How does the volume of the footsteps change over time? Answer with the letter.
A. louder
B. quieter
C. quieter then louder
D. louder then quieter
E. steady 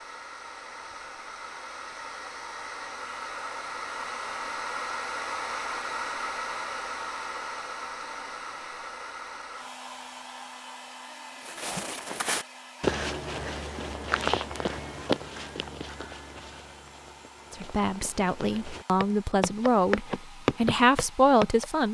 C.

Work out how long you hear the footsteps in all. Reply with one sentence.
You can hear the footsteps for 10 seconds altogether.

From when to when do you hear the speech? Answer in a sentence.
The speech can be heard from 17.5 to 21.9 s.